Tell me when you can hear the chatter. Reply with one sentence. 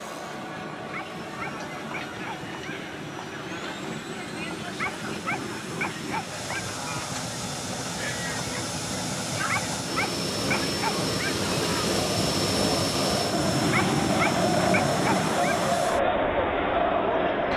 The chatter can be heard from 0.0 to 17.5 s.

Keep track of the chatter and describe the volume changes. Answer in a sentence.
The volume of the chatter goes up.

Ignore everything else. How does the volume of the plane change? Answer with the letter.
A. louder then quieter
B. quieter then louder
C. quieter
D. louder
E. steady
D.